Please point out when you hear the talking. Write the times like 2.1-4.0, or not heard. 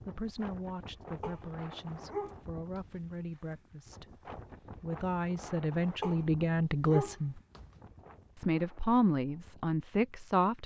0.0-7.4, 8.3-10.6.